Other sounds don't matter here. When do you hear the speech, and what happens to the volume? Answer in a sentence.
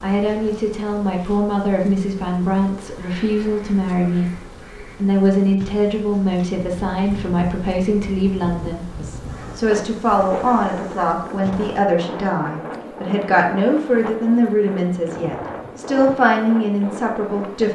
You can hear the speech from 0.0 to 17.7 s, at a steady volume.